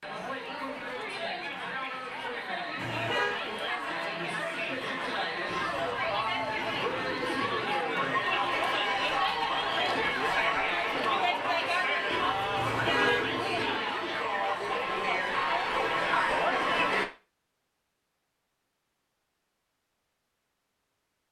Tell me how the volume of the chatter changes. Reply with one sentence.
The loudness of the chatter goes up.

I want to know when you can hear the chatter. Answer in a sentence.
You can hear the chatter from 0.0 to 17.1 s.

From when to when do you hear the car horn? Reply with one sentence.
The car horn can be heard from 2.8 to 3.4 s and from 12.6 to 13.3 s.